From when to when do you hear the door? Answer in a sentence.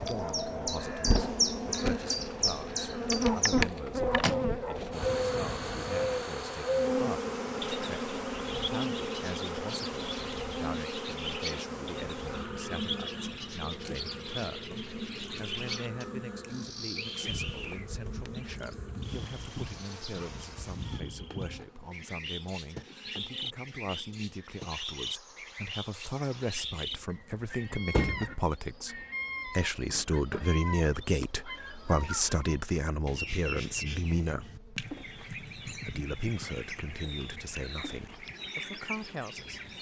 The door can be heard from 3.9 to 4.6 s, from 17.2 to 18.6 s and from 27.9 to 28.4 s.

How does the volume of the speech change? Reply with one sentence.
The loudness of the speech goes up.